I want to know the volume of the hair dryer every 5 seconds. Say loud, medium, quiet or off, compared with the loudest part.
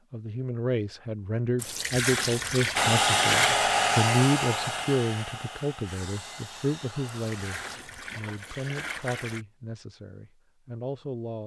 loud, quiet, off.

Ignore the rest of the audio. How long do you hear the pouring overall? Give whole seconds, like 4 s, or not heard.
4 s.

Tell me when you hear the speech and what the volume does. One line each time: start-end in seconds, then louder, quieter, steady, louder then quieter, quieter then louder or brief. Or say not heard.
0.1-11.4 quieter.